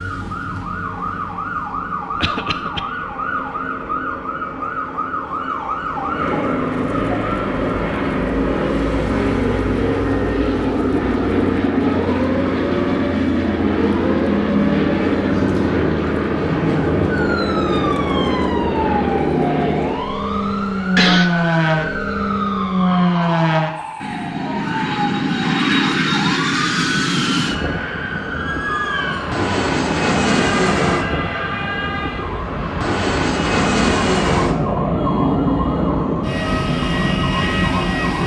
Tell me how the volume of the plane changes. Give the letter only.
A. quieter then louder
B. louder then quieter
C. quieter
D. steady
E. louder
E.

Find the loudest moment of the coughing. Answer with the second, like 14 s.
21 s.